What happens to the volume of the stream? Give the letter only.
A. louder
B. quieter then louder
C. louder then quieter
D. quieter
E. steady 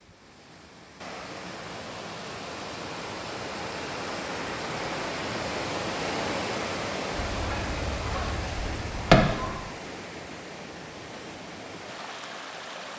C.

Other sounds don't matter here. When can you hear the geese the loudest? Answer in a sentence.
The loudest moment of the geese is at 9 seconds.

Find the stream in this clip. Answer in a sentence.
The stream can be heard from 0.0 to 12.9 s.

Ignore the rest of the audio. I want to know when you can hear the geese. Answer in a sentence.
The geese can be heard from 7.1 to 9.7 s.